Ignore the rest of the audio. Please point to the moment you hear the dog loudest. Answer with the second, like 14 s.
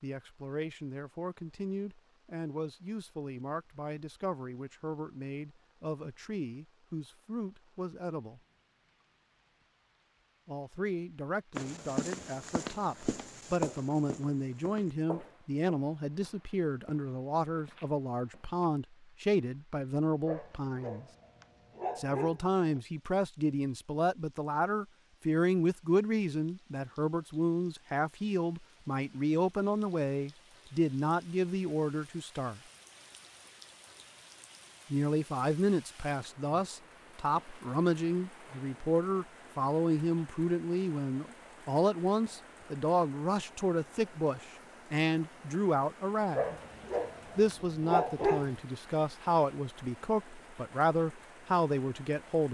48 s.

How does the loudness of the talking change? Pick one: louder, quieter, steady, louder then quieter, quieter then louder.
louder.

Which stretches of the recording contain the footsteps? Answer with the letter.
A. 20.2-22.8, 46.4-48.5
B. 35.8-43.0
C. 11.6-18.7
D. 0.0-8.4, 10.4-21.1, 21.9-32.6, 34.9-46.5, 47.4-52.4
C.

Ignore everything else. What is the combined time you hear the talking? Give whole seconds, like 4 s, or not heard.
46 s.